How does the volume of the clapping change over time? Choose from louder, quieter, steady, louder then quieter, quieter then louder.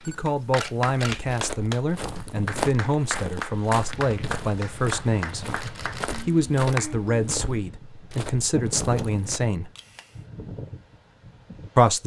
quieter.